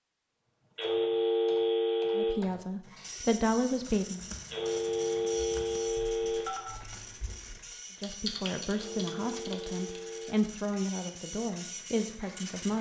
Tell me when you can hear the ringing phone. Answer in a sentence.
You can hear the ringing phone from 0.8 to 2.4 s, from 4.5 to 6.8 s and from 8.7 to 10.3 s.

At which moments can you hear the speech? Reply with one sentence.
The speech can be heard from 2.1 to 4.2 s and from 8.0 to 12.7 s.